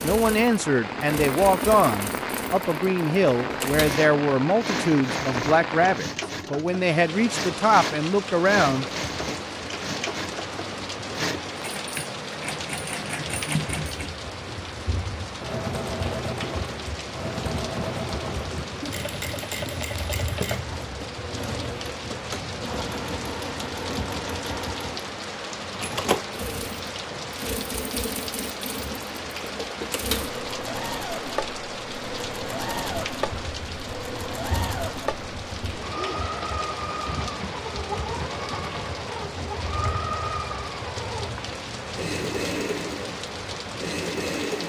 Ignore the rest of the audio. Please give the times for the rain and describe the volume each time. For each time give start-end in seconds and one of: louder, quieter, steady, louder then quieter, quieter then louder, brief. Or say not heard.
0.0-44.6 steady.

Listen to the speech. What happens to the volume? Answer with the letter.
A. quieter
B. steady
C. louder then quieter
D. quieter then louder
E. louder
B.